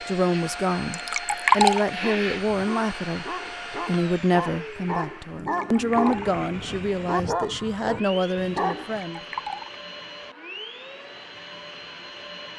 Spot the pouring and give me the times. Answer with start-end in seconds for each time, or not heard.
0.9-1.9, 5.3-6.4, 8.9-9.8.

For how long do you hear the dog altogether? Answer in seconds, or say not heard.
7 s.